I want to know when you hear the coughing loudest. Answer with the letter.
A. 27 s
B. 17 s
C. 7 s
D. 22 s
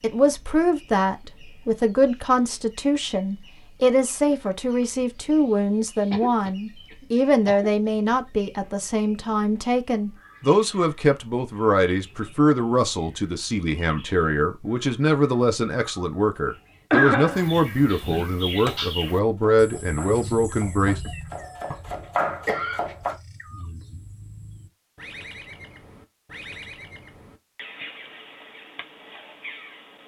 B.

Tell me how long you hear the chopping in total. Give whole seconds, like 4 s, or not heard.
5 s.